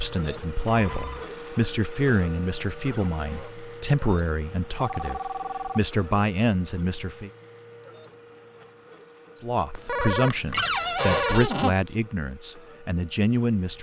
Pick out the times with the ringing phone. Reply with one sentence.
You can hear the ringing phone from 0.7 to 1.3 s, from 4.8 to 6.0 s and from 9.8 to 11.4 s.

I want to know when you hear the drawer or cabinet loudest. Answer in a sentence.
The volume of the drawer or cabinet peaks at 11 seconds.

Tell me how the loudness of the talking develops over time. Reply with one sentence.
The volume of the talking stays about the same.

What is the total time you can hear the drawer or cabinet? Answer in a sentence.
The drawer or cabinet can be heard for 2 seconds in total.